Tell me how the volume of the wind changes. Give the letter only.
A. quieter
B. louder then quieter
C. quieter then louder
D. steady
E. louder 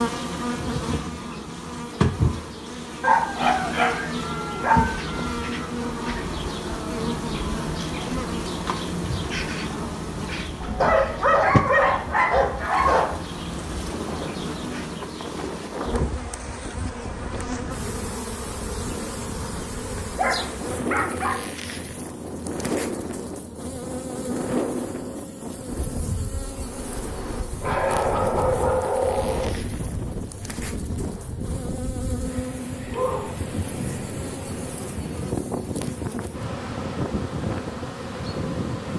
E.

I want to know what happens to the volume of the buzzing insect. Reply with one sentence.
The volume of the buzzing insect goes down.